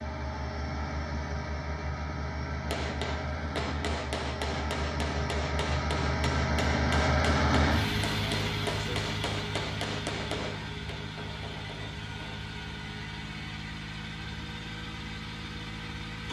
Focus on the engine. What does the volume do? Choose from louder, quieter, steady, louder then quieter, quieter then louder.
louder then quieter.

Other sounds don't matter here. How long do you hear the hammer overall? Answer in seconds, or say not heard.
10 s.